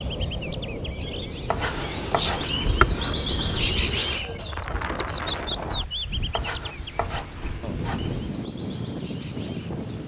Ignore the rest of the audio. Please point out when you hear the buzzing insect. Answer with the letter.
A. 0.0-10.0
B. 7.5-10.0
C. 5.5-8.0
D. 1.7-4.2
D.